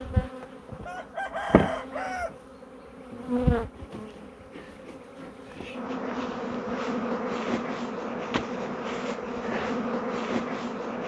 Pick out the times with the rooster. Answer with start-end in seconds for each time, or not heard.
0.8-2.4.